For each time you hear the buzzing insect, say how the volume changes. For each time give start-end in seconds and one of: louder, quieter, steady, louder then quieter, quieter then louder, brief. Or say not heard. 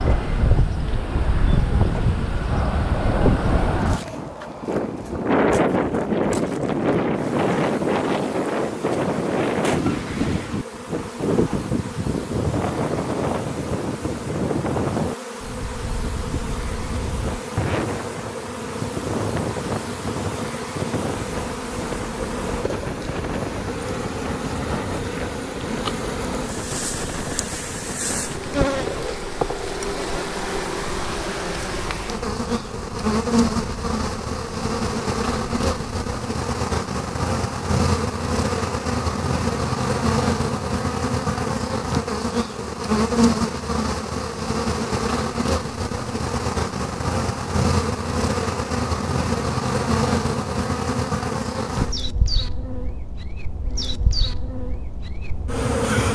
0.0-56.1 louder.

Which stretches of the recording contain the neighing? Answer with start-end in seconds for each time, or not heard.
not heard.